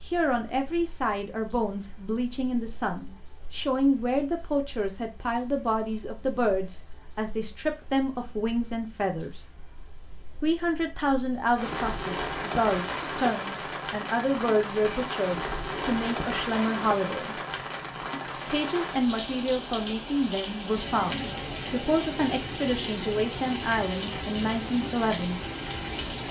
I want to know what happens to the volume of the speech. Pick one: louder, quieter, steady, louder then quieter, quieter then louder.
steady.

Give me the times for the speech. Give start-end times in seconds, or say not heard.
0.1-9.4, 10.4-17.4, 18.4-25.4.